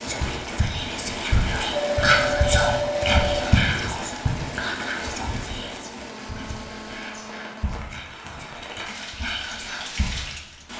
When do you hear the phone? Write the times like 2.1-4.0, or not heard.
1.7-3.6, 5.8-7.8.